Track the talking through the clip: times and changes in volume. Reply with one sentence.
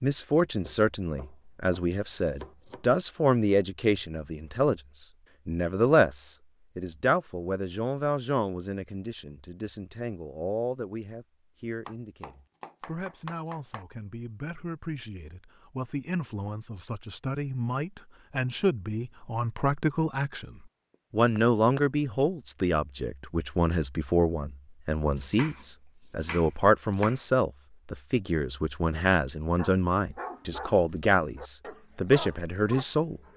You can hear the talking from 0.0 to 33.2 s, getting quieter then louder.